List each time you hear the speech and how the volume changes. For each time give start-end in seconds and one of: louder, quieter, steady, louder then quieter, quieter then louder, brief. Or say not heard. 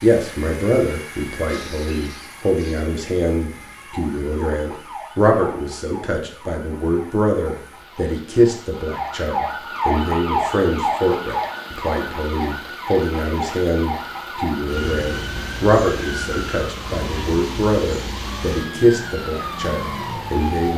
0.0-20.7 steady.